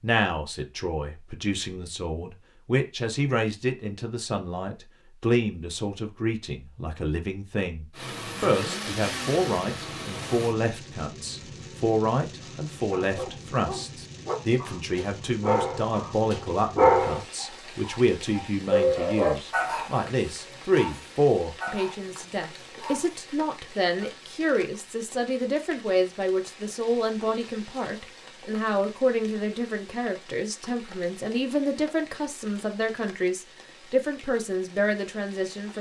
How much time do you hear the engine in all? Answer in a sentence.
You can hear the engine for 3 seconds altogether.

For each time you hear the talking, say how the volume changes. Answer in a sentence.
You can hear the talking from 0.0 to 35.7 s, at a steady volume.